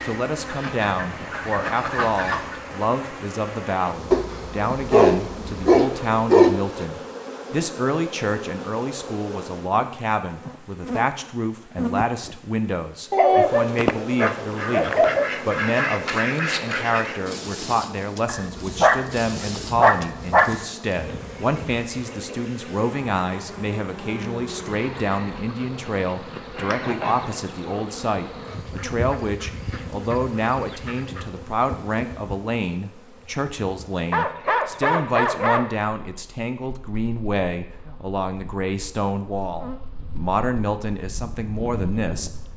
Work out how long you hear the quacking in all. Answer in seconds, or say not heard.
8 s.